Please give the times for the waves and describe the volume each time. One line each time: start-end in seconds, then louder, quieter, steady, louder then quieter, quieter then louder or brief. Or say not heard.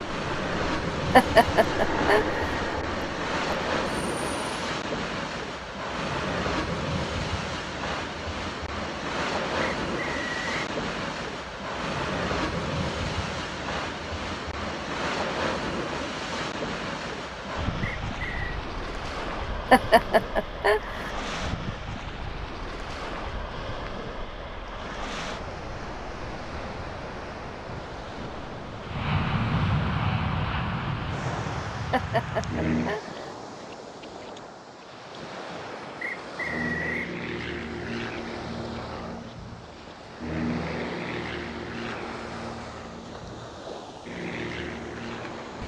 0.0-45.6 quieter.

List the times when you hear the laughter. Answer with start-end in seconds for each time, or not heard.
1.1-2.4, 19.7-21.1, 31.9-33.3.